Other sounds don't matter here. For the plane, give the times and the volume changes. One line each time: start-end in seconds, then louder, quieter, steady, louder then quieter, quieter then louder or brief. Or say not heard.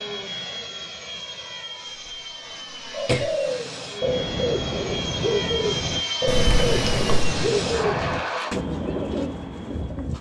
0.0-8.6 louder.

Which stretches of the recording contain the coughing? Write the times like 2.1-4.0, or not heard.
2.1-3.4, 6.2-7.3.